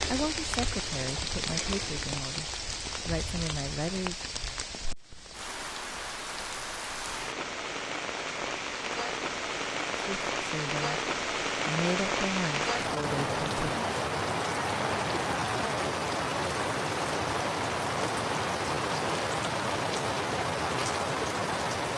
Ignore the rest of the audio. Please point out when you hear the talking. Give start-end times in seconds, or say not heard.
0.1-4.2, 9.9-13.8.